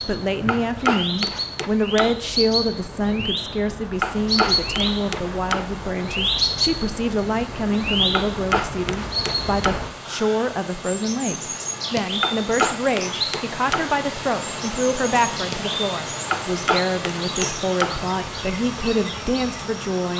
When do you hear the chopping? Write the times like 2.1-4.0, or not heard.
0.5-2.2, 4.0-5.7, 8.2-9.8, 12.2-13.9, 16.3-18.0.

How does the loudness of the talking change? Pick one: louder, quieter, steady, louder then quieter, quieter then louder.
steady.